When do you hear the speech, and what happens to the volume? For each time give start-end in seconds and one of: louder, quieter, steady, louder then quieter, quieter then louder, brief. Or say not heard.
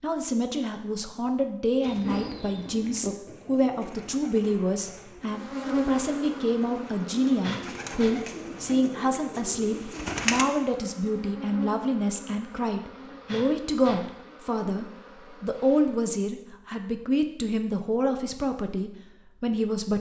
0.0-19.9 steady.